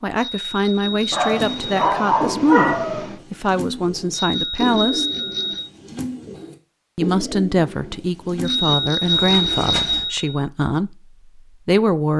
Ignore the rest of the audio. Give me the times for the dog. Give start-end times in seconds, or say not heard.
1.1-3.2.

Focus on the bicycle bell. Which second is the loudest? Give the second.
9 s.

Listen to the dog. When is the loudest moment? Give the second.
3 s.